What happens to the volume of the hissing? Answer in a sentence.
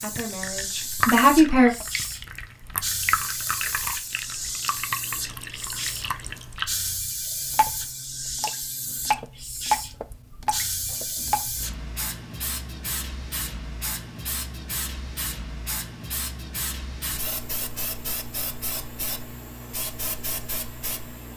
The volume of the hissing stays about the same.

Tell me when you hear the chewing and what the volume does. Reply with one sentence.
The chewing can't be heard in this clip.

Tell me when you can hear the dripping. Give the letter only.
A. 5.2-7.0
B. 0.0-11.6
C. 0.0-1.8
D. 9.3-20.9
B.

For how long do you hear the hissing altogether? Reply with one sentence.
You can hear the hissing for 21 seconds altogether.